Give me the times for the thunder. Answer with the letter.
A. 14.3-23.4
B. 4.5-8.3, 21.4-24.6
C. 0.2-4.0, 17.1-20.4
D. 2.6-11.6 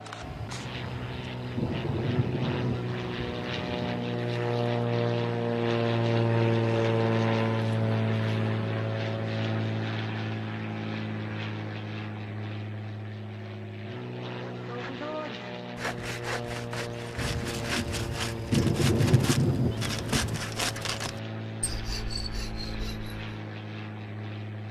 C.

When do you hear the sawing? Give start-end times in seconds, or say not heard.
14.3-23.4.